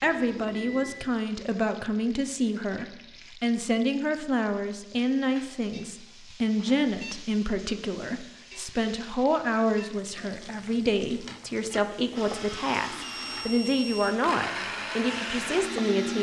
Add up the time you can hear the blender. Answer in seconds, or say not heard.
4 s.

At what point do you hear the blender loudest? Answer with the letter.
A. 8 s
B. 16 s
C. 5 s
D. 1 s
B.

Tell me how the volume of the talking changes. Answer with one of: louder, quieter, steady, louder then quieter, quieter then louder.
steady.